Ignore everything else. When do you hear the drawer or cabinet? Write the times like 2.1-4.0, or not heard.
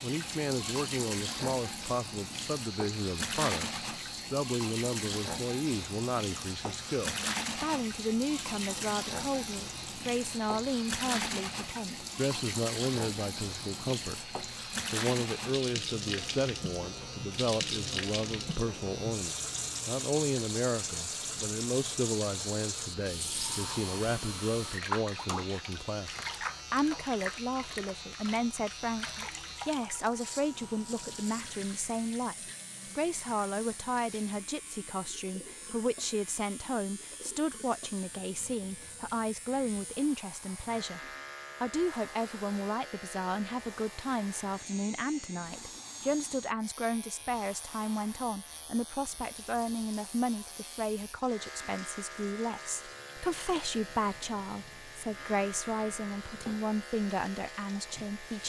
not heard.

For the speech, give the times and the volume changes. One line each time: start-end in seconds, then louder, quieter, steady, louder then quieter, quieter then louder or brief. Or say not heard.
0.0-41.0 steady
41.6-58.4 steady.